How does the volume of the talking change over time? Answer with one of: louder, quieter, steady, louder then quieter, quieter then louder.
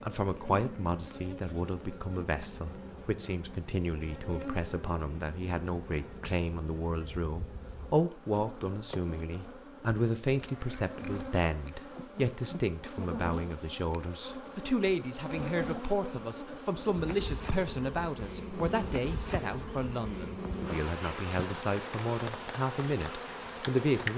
steady.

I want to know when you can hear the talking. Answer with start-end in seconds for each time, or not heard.
0.0-24.1.